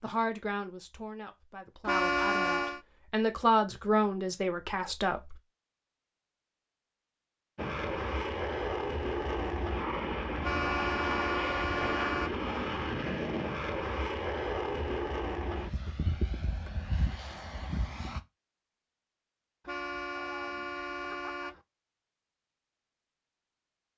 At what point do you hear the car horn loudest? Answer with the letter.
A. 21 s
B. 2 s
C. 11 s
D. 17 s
B.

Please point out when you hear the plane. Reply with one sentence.
You can hear the plane from 7.5 to 18.2 s.